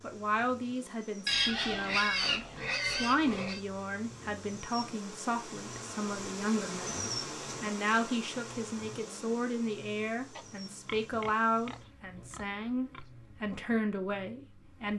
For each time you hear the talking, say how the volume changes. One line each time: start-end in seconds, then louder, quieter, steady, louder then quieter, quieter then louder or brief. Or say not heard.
0.0-14.9 steady.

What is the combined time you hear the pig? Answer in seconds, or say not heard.
5 s.